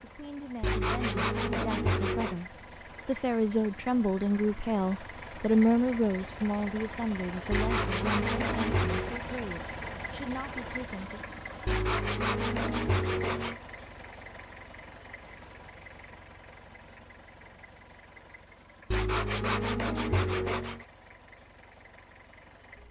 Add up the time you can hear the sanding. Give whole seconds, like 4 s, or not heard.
7 s.